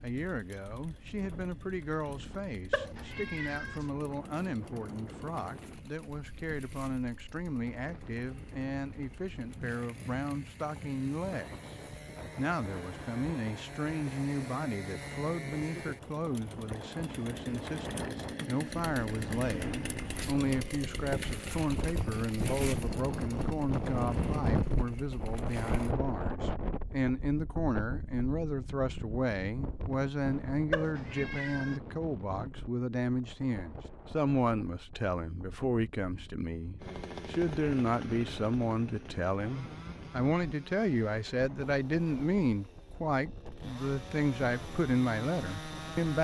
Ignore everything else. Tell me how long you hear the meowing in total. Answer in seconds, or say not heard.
2 s.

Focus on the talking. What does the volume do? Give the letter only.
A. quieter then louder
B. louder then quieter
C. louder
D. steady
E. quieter
C.